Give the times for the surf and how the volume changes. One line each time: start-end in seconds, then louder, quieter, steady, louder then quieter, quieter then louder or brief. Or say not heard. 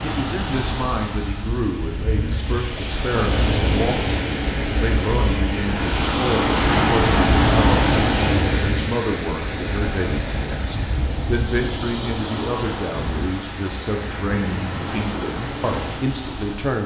0.0-16.8 louder then quieter.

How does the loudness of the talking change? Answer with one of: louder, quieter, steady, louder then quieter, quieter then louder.
steady.